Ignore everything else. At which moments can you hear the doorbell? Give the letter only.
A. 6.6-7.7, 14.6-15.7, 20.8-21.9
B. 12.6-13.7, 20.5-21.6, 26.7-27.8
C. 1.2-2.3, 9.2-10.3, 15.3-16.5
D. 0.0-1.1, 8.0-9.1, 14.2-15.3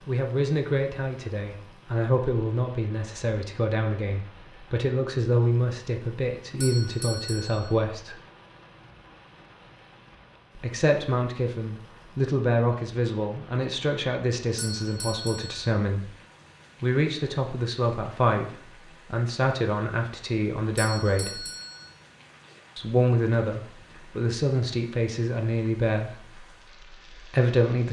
A.